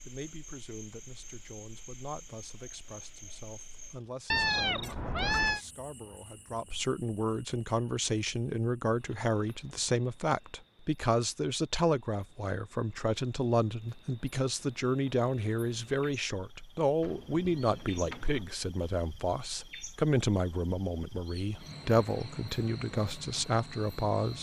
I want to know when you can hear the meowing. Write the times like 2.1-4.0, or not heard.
4.3-5.6, 17.0-18.4.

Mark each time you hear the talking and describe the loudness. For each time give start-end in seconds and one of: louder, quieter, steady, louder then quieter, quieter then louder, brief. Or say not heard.
0.1-24.3 louder.